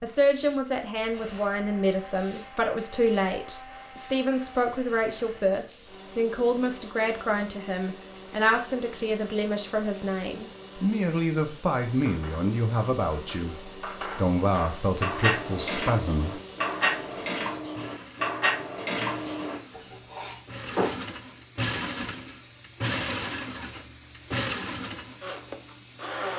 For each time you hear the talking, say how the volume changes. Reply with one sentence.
You can hear the talking from 0.0 to 16.4 s, at a steady volume.